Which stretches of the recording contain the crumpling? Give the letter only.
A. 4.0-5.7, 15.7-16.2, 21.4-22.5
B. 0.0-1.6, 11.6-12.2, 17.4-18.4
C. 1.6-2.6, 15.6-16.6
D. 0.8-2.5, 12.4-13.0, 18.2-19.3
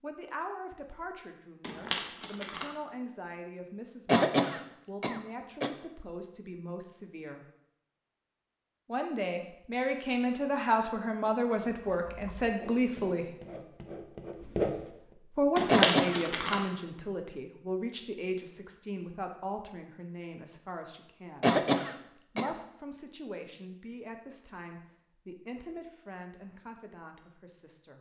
C.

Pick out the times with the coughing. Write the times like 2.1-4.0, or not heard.
4.0-5.7, 15.7-16.2, 21.4-22.5.